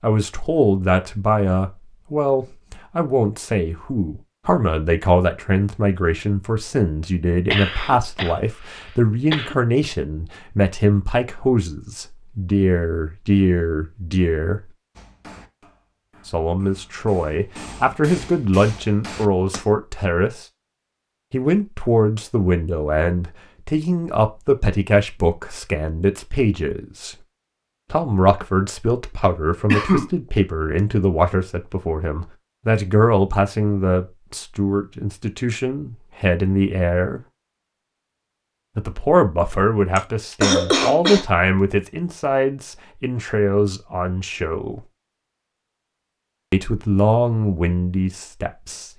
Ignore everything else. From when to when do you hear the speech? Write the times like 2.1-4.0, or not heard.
0.0-14.6, 16.2-20.4, 21.3-27.1, 27.9-37.2, 38.8-44.8, 46.5-48.9.